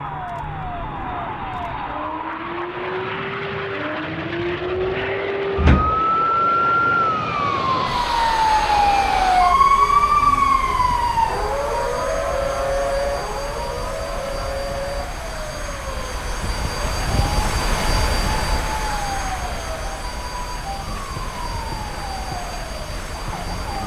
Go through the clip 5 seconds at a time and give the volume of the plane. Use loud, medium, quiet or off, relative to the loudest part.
loud, loud, medium, loud, medium.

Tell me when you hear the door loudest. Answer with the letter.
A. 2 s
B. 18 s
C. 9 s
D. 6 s
D.